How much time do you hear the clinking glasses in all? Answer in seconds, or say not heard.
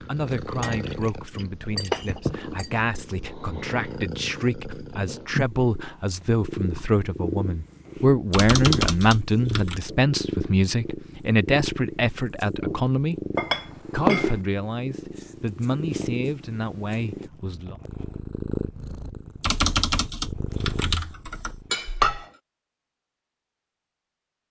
4 s.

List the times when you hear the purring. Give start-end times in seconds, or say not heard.
0.0-21.7.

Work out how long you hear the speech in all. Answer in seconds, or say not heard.
17 s.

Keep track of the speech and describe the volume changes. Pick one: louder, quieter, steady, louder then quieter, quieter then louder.
louder then quieter.